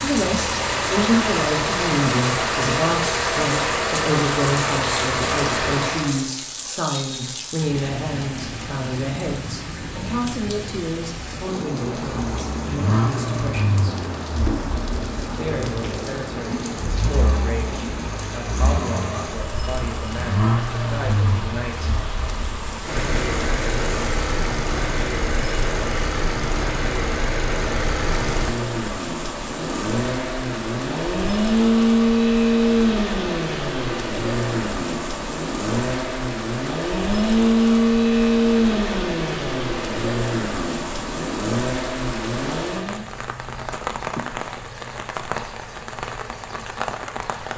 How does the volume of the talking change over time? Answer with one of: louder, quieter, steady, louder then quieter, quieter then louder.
quieter.